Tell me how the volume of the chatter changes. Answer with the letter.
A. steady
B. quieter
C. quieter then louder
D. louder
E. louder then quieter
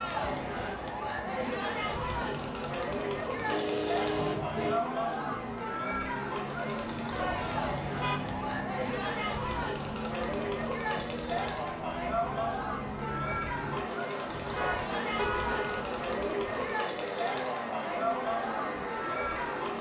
A.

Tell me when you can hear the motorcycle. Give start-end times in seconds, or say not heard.
0.1-19.7.